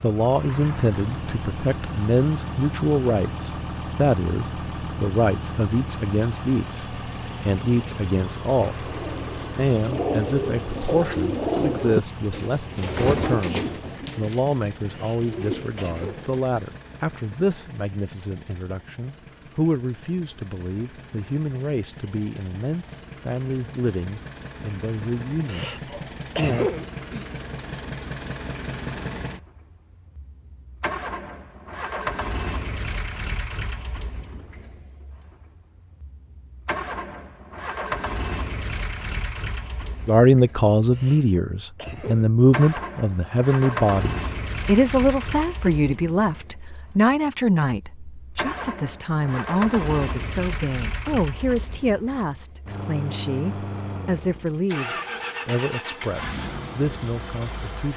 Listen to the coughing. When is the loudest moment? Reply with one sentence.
The loudest moment of the coughing is at 27 seconds.